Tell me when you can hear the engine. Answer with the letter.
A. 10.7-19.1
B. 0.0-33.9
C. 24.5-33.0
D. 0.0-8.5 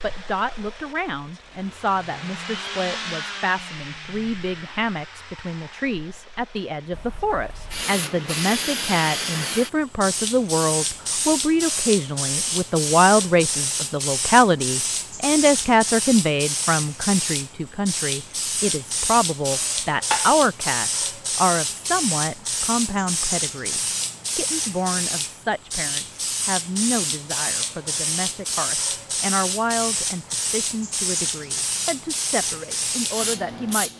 D.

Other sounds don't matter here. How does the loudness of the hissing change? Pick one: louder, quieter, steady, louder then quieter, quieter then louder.
steady.